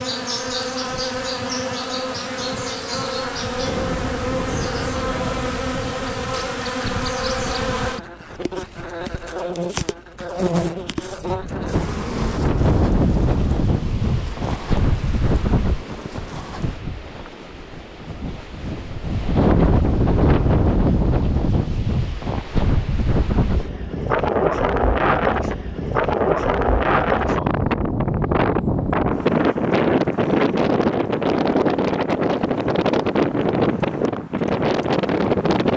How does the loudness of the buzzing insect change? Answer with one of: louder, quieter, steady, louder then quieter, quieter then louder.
quieter.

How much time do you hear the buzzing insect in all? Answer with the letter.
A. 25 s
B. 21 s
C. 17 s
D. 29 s
C.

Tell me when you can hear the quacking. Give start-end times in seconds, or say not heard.
not heard.